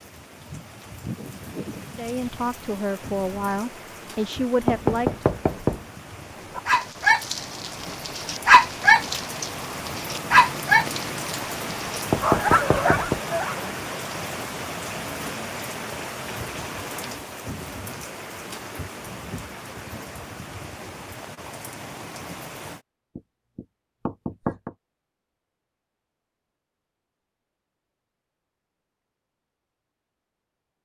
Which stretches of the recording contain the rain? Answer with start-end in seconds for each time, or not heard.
0.0-22.8.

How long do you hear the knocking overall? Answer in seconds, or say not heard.
4 s.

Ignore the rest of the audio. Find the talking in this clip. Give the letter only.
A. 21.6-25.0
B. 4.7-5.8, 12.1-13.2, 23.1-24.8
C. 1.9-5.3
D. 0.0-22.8
C.